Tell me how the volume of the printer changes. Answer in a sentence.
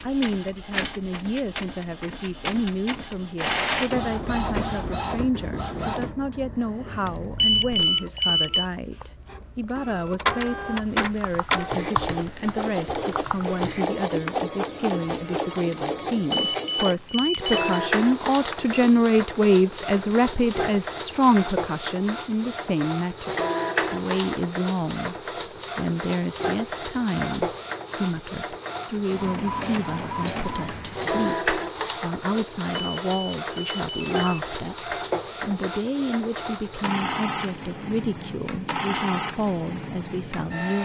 The loudness of the printer stays about the same.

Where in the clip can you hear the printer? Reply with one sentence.
You can hear the printer from 0.0 to 40.7 s.